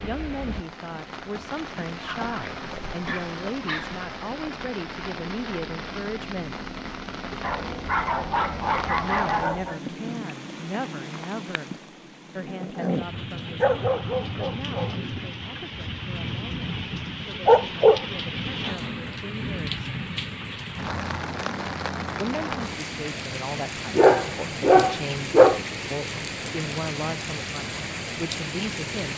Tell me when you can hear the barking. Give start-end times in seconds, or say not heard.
2.0-4.0, 7.4-9.8, 13.2-15.0, 17.4-19.1, 23.9-25.6.